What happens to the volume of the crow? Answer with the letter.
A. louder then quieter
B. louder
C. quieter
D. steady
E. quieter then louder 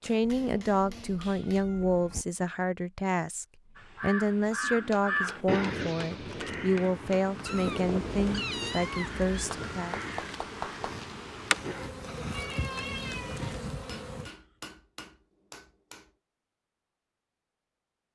C.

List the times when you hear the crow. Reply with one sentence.
The crow can be heard from 3.8 to 11.9 s.